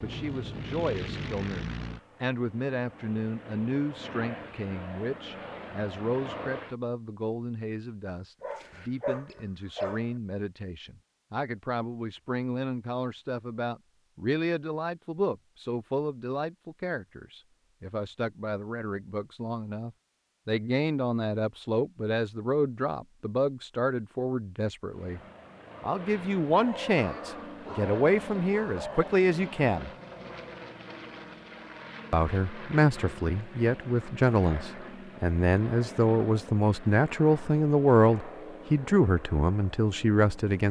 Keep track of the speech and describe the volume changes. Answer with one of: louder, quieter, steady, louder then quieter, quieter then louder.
louder.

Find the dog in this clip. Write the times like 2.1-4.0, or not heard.
8.4-10.1, 26.5-29.2.